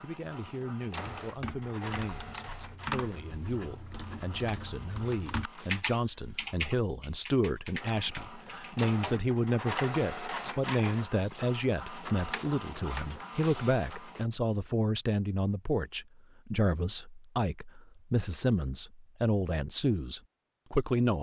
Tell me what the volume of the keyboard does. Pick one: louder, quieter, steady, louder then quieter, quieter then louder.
louder then quieter.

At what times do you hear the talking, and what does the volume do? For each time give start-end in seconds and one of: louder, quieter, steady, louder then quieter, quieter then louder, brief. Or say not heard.
0.0-21.1 louder.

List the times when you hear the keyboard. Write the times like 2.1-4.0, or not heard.
0.9-9.2.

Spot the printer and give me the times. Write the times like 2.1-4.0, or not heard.
0.0-5.8, 7.8-14.2.